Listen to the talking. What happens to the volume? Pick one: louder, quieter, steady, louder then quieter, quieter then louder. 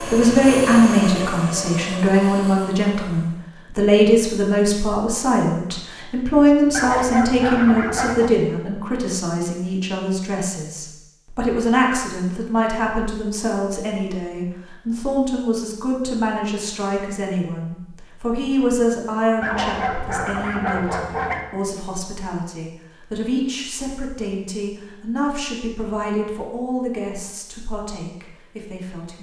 quieter.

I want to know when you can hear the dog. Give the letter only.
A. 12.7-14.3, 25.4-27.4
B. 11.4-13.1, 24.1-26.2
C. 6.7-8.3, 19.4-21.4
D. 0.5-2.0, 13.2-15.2
C.